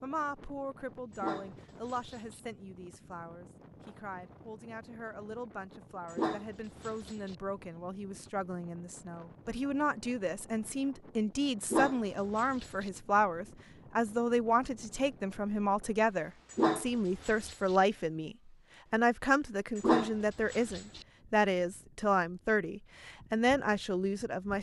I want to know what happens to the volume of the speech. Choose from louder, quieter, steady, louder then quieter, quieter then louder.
louder.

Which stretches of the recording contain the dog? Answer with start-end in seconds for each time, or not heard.
1.1-2.4, 6.0-7.3, 11.6-12.9, 16.5-17.8, 19.8-21.1.